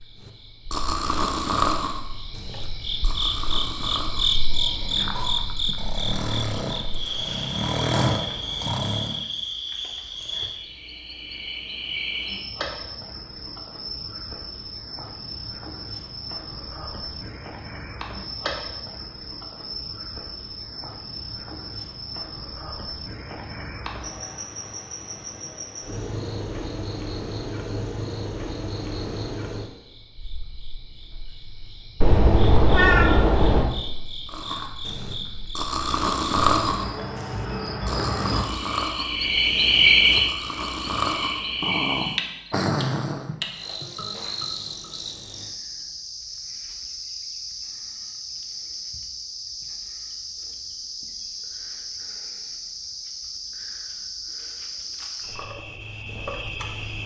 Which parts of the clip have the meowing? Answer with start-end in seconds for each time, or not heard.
32.0-33.7.